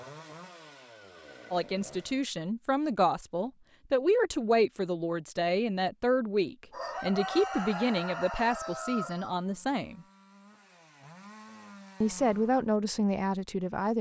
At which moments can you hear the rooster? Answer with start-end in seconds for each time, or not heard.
6.7-9.4.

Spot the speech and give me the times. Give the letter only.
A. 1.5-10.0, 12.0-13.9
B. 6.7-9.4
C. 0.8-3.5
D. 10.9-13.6
A.